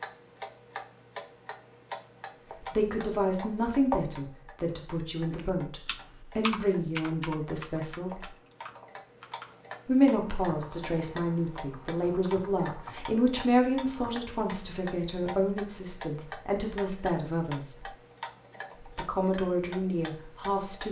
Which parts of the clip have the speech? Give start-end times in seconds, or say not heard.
2.6-8.3, 9.8-17.9, 18.9-20.8.